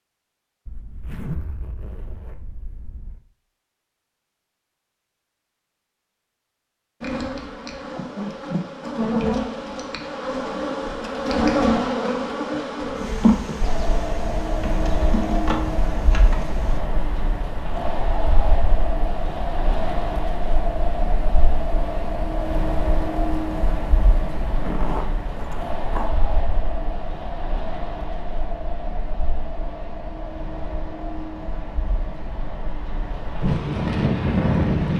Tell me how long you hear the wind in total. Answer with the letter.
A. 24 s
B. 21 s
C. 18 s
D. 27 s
B.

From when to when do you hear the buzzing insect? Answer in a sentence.
You can hear the buzzing insect from 7.0 to 16.8 s.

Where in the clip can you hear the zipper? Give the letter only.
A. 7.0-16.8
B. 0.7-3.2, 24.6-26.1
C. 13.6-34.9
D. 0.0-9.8
B.